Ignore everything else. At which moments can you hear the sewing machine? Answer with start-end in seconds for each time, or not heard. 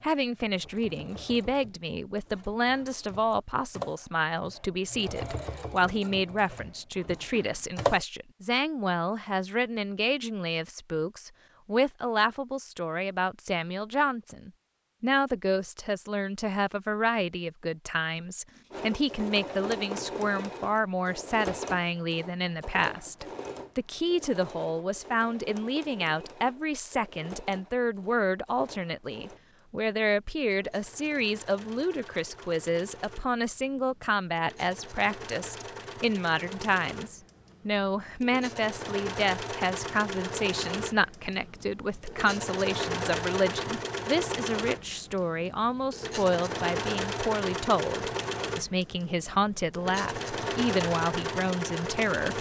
0.1-8.1, 18.7-52.3.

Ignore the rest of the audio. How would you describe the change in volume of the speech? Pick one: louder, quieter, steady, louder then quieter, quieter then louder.
steady.